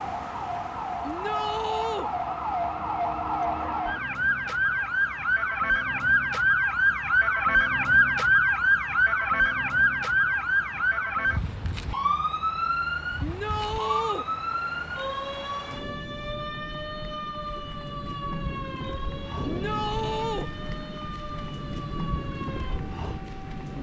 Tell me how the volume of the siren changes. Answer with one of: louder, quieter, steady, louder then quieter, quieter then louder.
louder then quieter.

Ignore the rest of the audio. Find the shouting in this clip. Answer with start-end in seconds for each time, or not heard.
1.0-2.1, 13.2-14.2, 19.4-20.5.